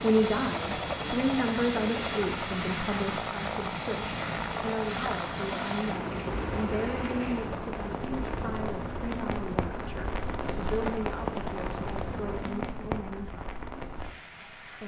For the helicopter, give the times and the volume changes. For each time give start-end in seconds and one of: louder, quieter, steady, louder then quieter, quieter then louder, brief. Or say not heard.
0.0-12.7 quieter.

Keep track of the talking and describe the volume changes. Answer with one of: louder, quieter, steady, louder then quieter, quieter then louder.
quieter.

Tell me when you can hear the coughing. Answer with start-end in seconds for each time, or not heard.
not heard.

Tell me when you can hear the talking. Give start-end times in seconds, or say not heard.
0.0-14.8.